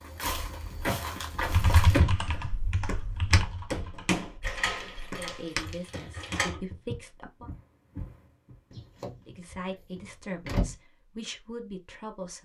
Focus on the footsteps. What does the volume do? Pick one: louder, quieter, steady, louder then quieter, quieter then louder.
quieter.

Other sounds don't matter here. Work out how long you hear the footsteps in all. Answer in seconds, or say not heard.
9 s.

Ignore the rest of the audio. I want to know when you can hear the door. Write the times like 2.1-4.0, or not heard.
0.8-2.5, 4.4-6.5, 8.7-10.8.